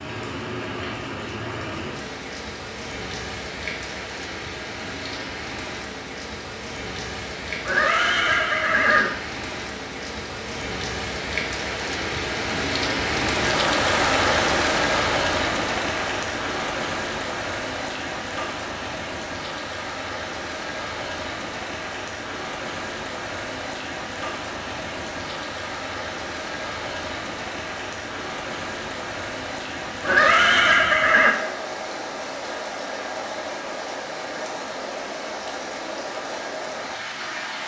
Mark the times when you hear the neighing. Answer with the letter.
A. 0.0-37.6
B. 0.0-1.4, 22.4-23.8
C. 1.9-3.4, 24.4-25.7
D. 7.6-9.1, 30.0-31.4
D.